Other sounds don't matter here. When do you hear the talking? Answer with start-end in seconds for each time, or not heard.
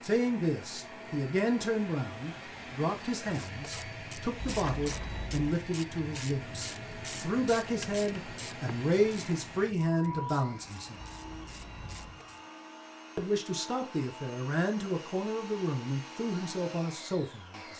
0.0-11.0, 13.2-17.7.